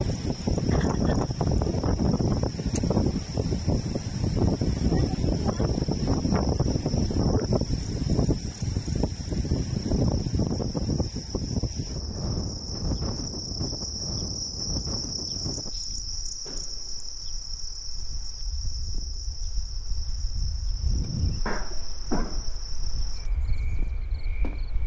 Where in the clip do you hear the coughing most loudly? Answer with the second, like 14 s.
22 s.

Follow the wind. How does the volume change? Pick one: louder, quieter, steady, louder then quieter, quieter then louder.
quieter.